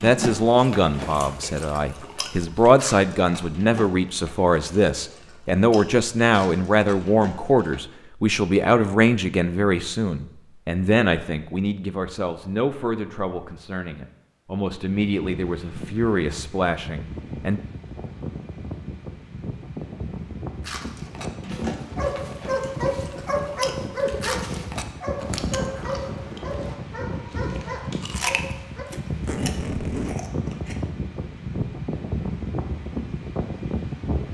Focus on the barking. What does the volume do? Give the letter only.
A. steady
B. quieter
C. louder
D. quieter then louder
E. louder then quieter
B.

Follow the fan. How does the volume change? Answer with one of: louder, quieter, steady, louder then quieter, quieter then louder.
louder.